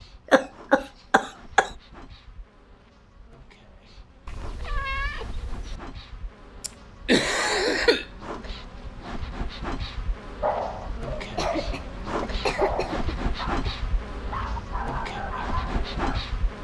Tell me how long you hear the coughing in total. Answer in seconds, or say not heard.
5 s.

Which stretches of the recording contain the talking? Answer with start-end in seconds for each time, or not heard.
not heard.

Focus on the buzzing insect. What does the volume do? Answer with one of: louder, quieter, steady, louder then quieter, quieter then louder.
louder.